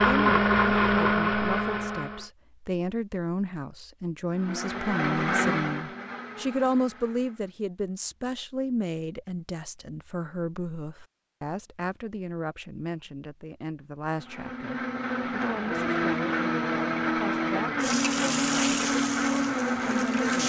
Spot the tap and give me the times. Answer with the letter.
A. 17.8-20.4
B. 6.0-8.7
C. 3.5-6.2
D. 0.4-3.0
A.